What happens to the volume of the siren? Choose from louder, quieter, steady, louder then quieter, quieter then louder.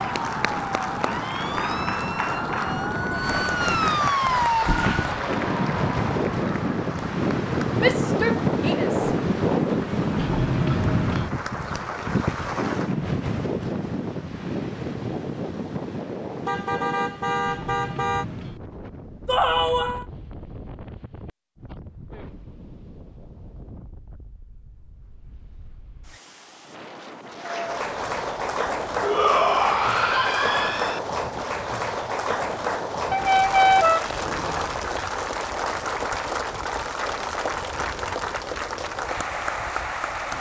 louder.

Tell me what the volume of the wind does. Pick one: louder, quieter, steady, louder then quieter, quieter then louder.
quieter.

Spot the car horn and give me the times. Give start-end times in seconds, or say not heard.
16.4-18.2, 33.1-34.8.